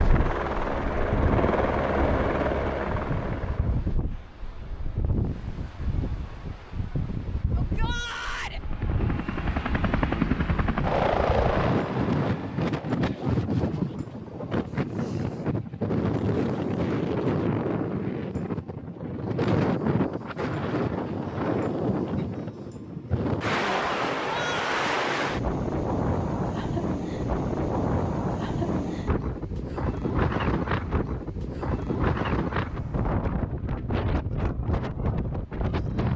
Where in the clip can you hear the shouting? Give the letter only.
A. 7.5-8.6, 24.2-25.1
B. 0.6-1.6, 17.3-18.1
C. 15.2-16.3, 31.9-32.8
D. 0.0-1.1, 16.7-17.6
A.